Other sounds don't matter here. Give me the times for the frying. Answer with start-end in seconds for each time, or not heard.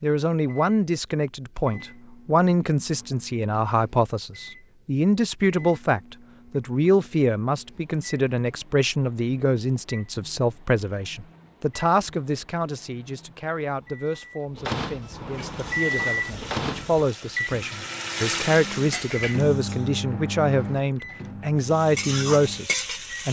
15.2-19.9, 21.6-23.2.